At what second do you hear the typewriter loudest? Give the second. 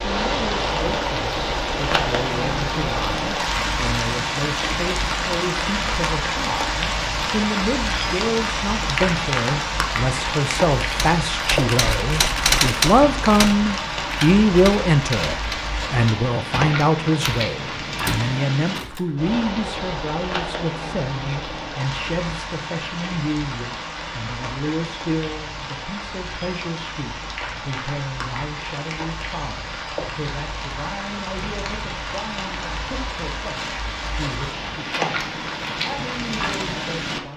13 s.